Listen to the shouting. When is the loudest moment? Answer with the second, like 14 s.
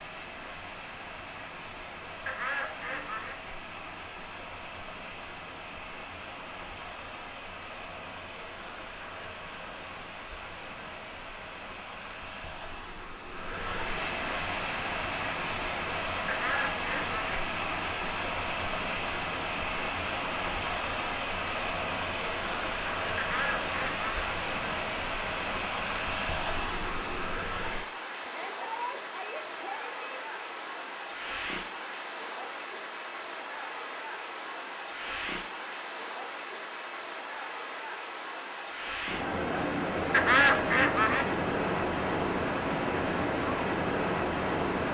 29 s.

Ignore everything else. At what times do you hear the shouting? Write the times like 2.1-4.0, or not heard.
28.2-30.1.